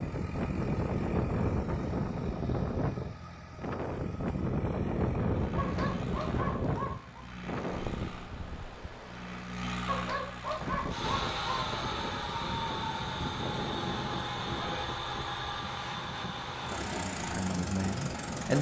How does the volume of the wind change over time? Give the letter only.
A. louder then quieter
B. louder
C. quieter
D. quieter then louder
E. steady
C.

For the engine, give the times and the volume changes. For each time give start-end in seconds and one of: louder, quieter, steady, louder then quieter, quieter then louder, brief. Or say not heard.
0.0-18.5 louder.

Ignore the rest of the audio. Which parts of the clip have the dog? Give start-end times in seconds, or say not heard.
5.5-7.2, 9.8-11.7.